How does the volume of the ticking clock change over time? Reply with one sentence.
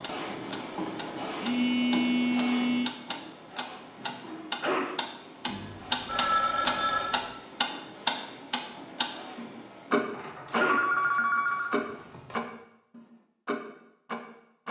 The loudness of the ticking clock goes up, then down.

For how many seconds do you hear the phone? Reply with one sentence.
You can hear the phone for 5 seconds altogether.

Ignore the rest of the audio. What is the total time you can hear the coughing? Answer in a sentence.
You can hear the coughing for 2 seconds altogether.